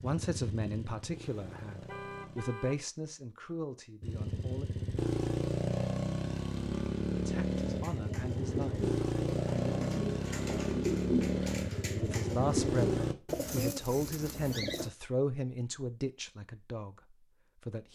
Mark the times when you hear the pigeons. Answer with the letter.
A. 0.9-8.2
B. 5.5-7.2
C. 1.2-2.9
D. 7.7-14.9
D.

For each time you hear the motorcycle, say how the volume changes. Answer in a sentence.
The motorcycle can be heard briefly from 0.0 to 2.4 s; and from 4.0 to 13.2 s, at a steady volume.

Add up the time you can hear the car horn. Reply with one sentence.
The car horn can be heard for 2 seconds in total.